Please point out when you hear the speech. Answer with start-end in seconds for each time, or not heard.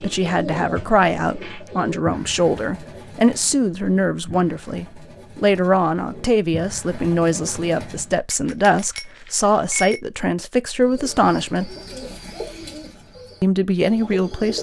0.0-11.7, 13.4-14.5.